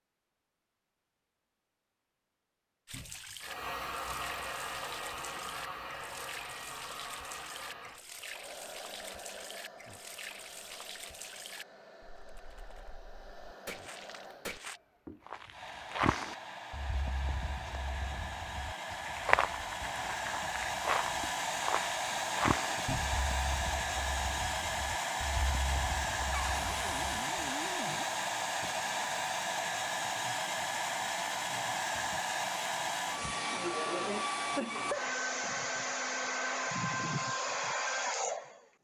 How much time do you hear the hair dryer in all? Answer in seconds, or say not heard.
35 s.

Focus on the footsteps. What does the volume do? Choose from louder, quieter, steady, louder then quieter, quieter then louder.
quieter.